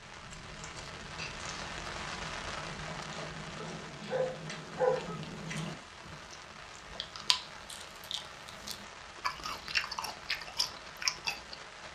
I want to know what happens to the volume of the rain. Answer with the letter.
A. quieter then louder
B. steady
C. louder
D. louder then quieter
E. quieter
E.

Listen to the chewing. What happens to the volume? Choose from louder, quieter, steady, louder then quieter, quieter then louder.
louder.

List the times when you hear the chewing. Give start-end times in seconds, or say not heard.
0.2-11.6.